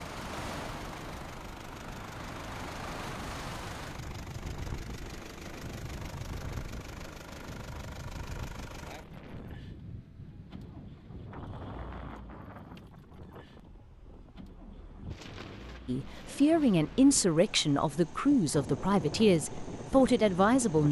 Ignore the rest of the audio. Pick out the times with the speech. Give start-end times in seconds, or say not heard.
15.8-20.8.